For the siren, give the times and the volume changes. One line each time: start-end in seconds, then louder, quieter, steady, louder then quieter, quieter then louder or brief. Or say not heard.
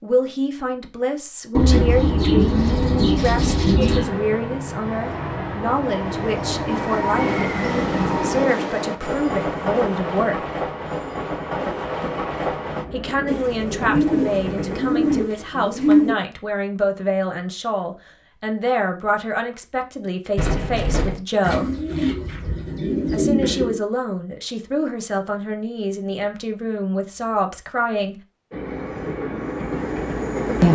not heard.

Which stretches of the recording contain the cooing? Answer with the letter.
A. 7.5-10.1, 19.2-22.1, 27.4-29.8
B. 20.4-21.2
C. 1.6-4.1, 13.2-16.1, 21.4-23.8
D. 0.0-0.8
C.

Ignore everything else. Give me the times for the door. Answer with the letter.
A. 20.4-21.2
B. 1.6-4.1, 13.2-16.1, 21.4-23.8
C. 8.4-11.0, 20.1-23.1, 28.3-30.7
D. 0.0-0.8
A.